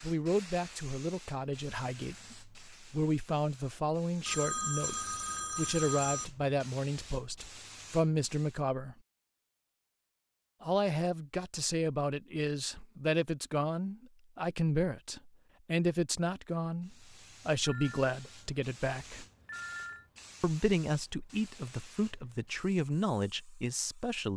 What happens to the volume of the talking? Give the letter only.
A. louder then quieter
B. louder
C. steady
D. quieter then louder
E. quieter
C.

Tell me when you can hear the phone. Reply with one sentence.
The phone can be heard from 4.2 to 6.2 s and from 17.6 to 20.1 s.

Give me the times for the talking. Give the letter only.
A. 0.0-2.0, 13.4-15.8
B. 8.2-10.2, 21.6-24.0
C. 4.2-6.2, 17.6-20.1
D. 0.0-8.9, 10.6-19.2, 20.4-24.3
D.